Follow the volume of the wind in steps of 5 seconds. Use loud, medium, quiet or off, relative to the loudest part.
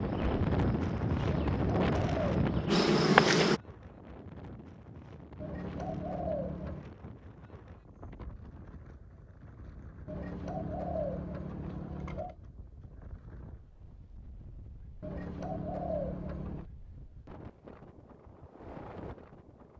loud, quiet, quiet, quiet.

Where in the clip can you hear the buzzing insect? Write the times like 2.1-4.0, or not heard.
0.0-3.6.